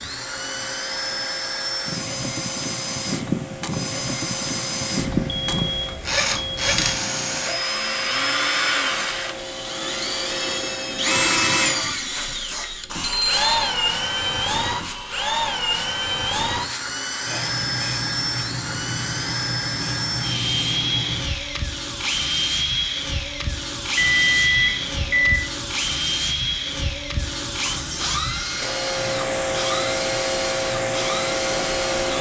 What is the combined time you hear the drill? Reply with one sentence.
You can hear the drill for 32 seconds altogether.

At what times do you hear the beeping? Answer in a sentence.
The beeping can be heard from 5.2 to 6.8 s, from 13.0 to 13.8 s and from 23.9 to 25.4 s.